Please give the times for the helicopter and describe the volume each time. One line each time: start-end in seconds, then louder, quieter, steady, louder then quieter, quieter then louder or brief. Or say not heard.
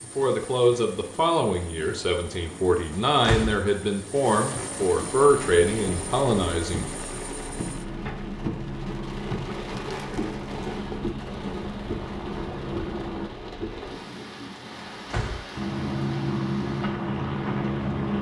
0.0-13.3 louder
15.6-18.1 brief.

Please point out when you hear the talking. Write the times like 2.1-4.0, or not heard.
0.0-6.8.